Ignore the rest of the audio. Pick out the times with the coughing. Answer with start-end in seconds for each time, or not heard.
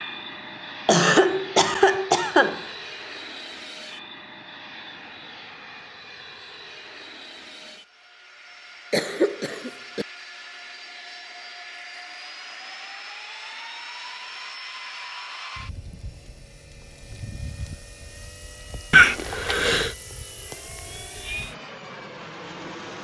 0.8-2.6, 8.9-10.1, 18.9-19.9.